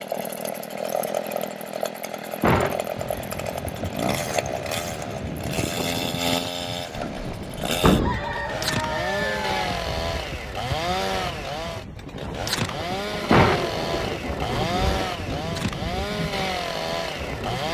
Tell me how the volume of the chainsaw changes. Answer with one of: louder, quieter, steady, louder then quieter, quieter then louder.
steady.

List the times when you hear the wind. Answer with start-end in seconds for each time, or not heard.
3.0-17.6.